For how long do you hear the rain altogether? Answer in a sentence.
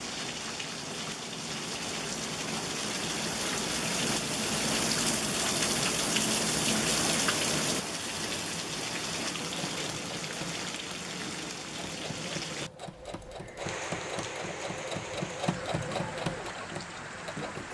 You can hear the rain for 18 seconds altogether.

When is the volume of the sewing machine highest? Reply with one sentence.
The loudest moment of the sewing machine is at 16 seconds.